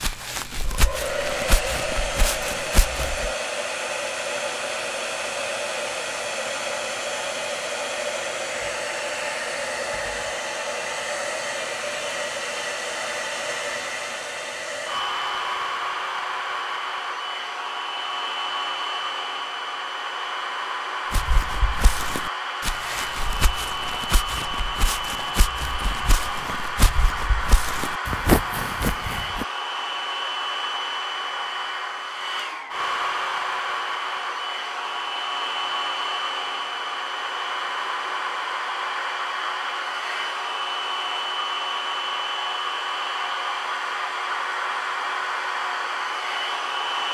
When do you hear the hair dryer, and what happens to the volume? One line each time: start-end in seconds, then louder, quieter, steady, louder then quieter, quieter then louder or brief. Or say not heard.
0.0-47.0 steady.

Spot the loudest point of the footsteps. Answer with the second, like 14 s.
28 s.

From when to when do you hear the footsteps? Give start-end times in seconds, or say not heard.
0.0-3.3, 21.1-29.4.